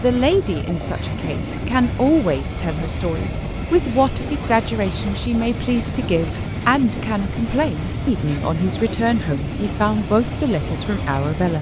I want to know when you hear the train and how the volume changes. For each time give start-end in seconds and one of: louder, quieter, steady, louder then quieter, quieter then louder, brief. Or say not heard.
0.0-11.5 steady.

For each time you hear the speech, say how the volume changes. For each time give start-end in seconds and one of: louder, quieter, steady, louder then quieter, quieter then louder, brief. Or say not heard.
0.0-11.5 steady.